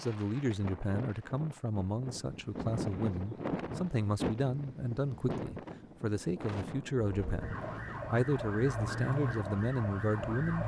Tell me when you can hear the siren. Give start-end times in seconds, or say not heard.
7.1-10.6.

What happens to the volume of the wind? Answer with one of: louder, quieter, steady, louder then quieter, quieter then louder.
louder then quieter.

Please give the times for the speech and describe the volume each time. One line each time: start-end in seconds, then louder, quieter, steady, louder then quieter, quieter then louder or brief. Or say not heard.
0.0-10.6 steady.